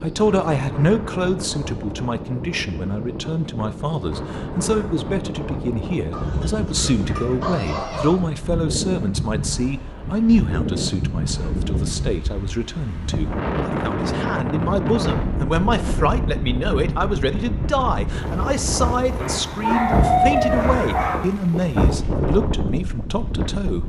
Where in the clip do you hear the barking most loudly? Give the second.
20 s.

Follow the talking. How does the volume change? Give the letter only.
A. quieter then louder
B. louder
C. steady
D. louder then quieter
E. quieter
C.